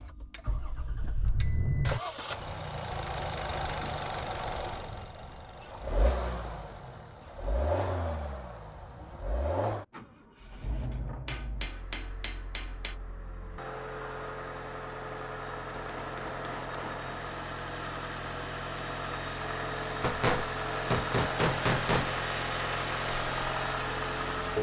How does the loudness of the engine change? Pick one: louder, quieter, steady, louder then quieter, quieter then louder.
quieter then louder.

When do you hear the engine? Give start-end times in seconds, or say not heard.
0.0-24.5.